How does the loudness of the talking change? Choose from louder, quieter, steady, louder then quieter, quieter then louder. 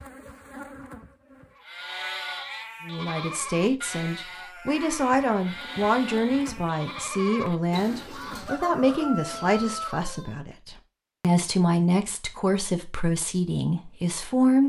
steady.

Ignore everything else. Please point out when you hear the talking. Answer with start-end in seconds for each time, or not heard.
2.9-14.6.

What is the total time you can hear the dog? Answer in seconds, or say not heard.
not heard.